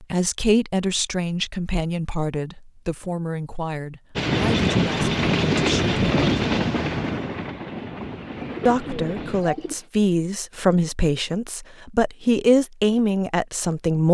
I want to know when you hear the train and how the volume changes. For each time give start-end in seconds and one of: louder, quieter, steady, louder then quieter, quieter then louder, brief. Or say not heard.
4.2-9.4 quieter.